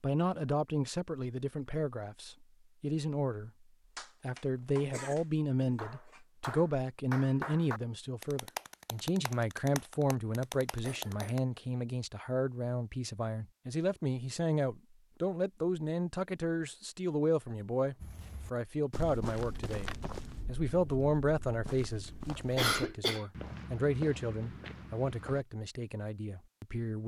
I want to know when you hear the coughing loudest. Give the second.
23 s.